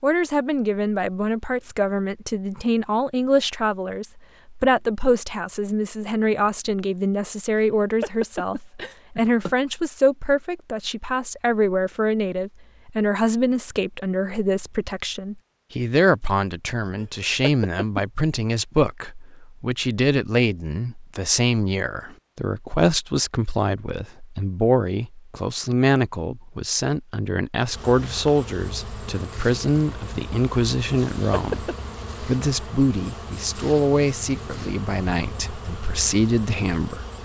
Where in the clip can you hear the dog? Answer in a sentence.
You can't hear the dog here.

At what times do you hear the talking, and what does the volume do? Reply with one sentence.
The talking can be heard from 0.0 to 37.2 s, at a steady volume.